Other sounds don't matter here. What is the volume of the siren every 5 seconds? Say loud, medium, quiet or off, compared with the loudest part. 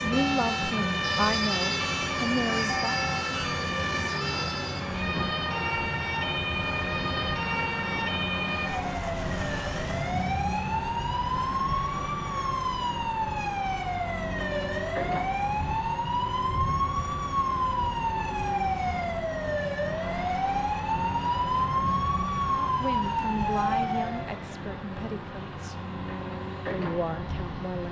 loud, loud, loud, loud, loud, off.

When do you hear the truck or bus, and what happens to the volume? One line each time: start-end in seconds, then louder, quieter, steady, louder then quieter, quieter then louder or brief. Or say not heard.
0.0-27.8 steady.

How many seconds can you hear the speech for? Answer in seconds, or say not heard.
7 s.